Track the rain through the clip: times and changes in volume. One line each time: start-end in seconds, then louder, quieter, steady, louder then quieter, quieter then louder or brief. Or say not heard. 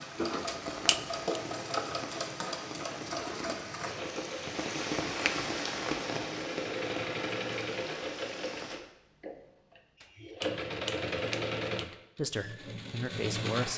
0.0-8.8 louder then quieter.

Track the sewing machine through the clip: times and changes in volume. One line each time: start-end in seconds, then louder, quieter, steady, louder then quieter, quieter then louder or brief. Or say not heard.
0.0-13.7 steady.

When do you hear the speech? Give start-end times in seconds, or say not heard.
11.7-13.7.